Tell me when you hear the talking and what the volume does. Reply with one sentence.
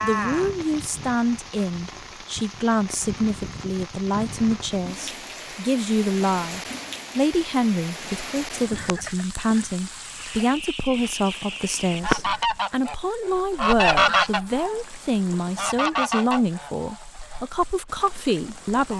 The talking can be heard from 0.0 to 18.9 s, at a steady volume.